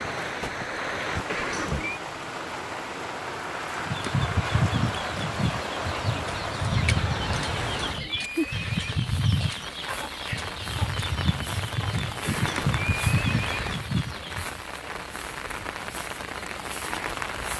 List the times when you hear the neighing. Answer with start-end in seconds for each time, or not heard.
1.2-2.0, 7.5-9.0, 12.2-13.8.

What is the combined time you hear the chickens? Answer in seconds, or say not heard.
11 s.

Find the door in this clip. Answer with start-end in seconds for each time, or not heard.
not heard.